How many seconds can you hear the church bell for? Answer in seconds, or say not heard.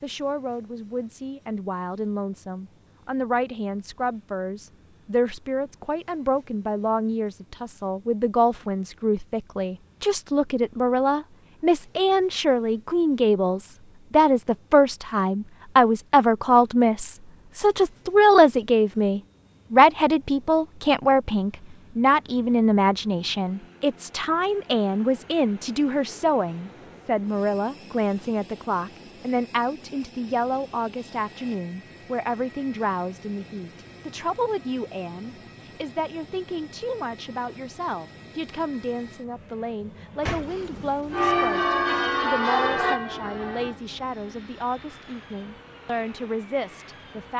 3 s.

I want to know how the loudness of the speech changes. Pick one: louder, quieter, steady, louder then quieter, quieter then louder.
louder then quieter.